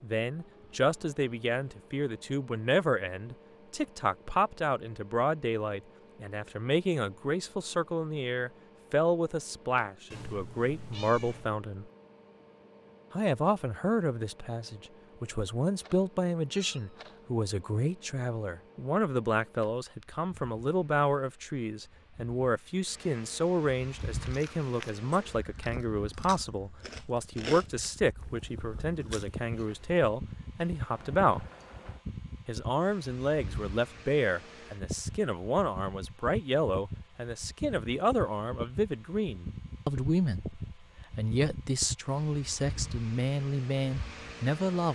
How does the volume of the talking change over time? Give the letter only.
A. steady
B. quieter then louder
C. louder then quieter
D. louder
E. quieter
A.